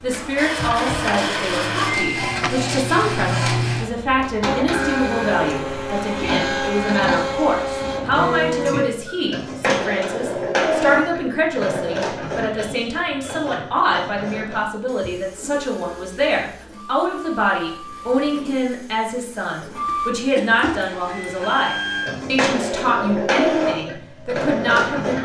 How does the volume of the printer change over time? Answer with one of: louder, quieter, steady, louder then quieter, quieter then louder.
quieter then louder.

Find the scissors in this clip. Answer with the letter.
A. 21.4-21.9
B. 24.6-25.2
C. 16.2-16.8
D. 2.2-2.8
D.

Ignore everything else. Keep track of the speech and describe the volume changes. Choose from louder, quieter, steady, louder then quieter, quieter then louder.
steady.